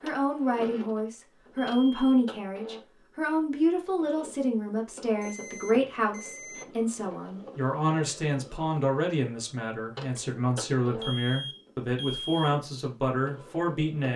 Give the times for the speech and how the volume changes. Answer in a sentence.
The speech can be heard from 0.0 to 14.1 s, at a steady volume.